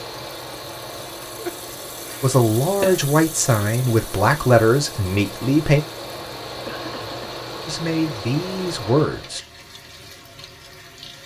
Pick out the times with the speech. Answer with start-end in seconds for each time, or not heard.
2.2-5.8, 7.7-9.4.